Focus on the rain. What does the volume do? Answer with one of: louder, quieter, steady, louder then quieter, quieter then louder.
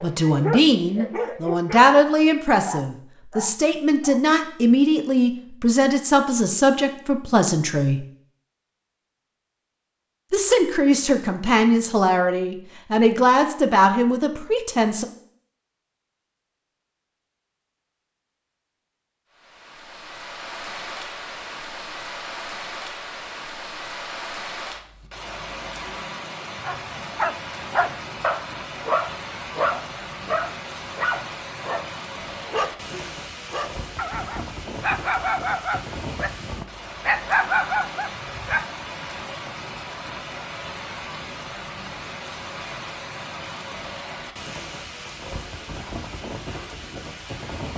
steady.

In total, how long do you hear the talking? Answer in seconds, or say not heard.
13 s.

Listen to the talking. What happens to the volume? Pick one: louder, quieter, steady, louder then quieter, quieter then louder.
steady.